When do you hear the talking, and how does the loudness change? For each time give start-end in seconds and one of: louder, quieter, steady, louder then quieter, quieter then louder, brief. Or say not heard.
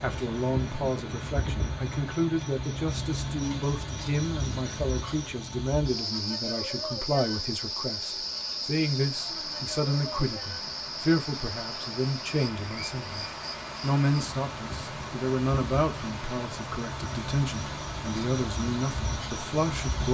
0.0-20.0 steady.